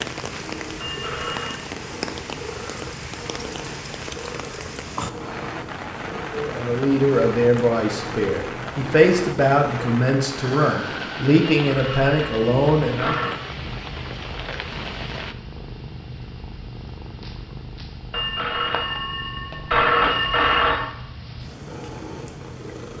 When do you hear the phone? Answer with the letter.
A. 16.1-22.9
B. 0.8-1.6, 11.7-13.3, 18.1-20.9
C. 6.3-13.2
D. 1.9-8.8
B.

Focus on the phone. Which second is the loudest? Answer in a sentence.
The loudest moment of the phone is at 20 seconds.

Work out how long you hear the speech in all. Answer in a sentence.
The speech can be heard for 7 seconds in total.